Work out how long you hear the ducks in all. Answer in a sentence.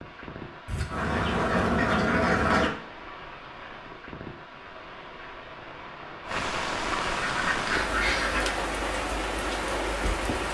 The ducks can be heard for 4 seconds in total.